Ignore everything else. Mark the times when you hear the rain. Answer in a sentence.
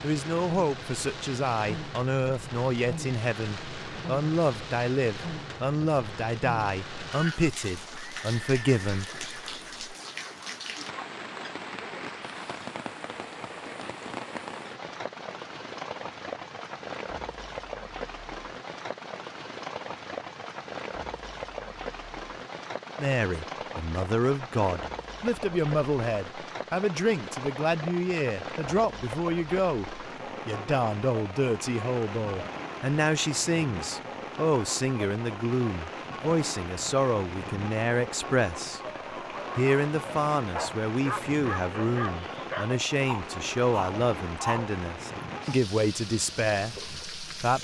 The rain can be heard from 0.0 to 47.5 s.